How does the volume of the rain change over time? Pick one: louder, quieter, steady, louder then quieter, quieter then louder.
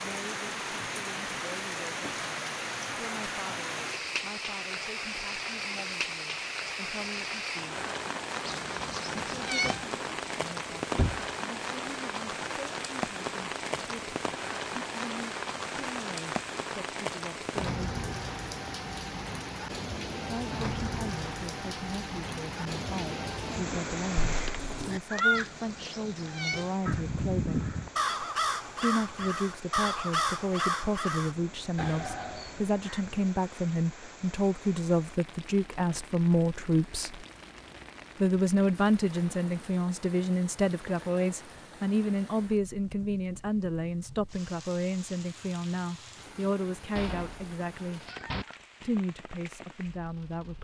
quieter.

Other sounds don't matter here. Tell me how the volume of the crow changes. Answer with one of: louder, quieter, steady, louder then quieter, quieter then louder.
quieter.